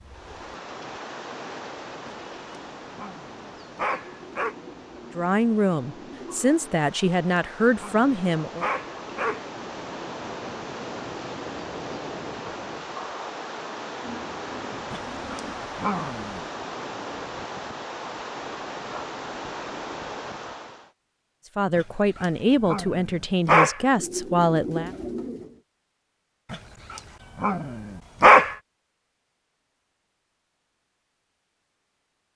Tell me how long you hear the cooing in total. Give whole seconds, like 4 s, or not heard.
6 s.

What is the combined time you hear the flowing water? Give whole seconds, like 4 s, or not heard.
21 s.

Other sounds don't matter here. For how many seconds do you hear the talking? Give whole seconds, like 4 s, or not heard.
7 s.